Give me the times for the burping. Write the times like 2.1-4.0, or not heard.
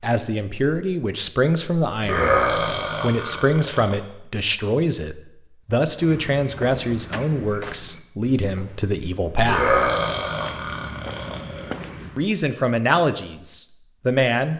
2.0-4.0, 9.4-11.8.